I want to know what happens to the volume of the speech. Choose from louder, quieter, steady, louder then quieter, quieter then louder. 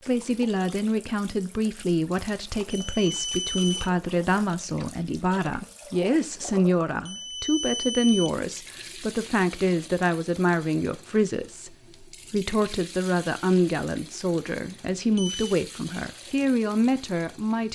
steady.